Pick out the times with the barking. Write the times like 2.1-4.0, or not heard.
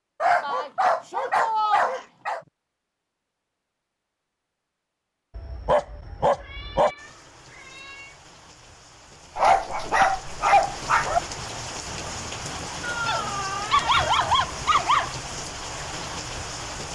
0.2-2.4, 5.3-6.9, 9.3-11.2, 13.1-15.1.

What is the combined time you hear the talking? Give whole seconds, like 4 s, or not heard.
not heard.